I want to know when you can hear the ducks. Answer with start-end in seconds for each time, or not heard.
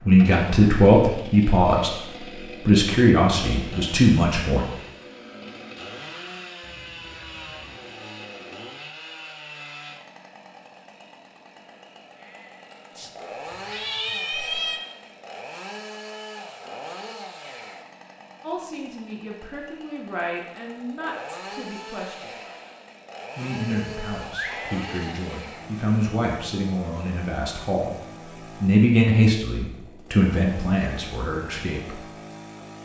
not heard.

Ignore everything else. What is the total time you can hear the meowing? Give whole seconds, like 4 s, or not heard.
5 s.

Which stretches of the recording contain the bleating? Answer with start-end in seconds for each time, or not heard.
12.1-13.0, 24.4-25.1.